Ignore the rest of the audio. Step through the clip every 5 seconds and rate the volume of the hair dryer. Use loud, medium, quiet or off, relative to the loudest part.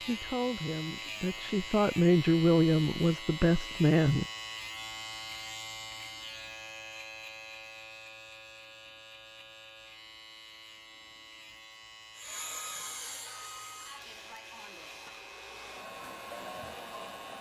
off, off, loud, loud.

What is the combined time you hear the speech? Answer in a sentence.
You can hear the speech for 4 seconds altogether.